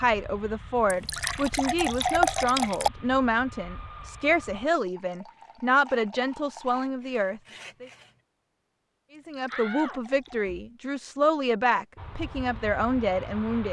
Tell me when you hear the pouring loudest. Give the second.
2 s.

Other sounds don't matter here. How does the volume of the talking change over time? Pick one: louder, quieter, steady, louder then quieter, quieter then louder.
steady.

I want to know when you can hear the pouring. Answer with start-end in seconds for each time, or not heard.
0.8-2.9, 4.8-6.8, 9.1-10.5.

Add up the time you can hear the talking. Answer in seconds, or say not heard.
12 s.